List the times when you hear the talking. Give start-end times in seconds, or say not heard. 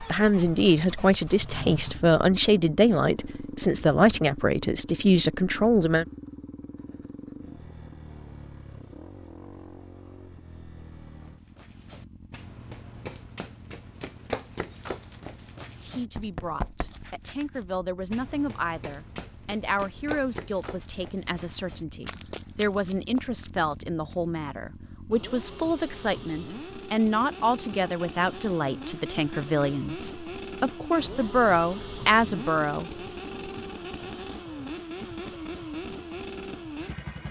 0.1-6.0, 15.8-32.9.